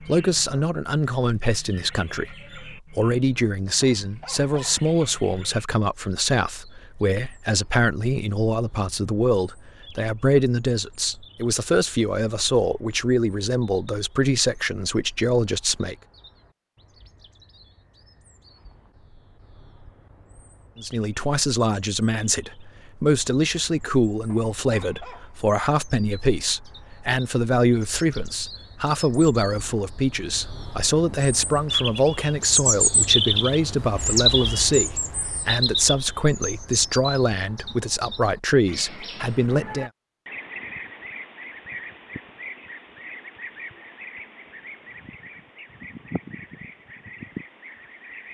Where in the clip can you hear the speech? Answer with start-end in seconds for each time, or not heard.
0.1-15.9, 20.8-39.9.